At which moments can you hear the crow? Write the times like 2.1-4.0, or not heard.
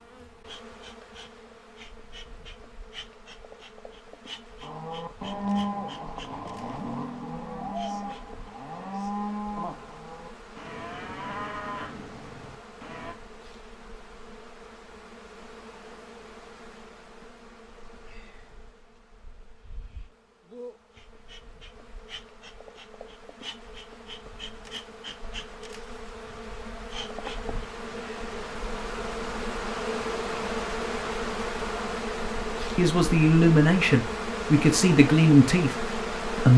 not heard.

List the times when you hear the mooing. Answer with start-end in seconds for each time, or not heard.
4.6-13.2.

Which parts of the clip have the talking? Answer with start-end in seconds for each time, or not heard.
32.8-36.5.